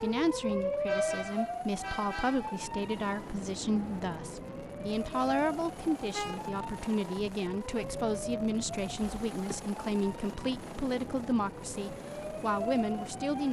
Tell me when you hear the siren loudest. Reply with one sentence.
The volume of the siren peaks at 1 second.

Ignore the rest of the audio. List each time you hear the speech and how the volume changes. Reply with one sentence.
The speech can be heard from 0.0 to 13.4 s, at a steady volume.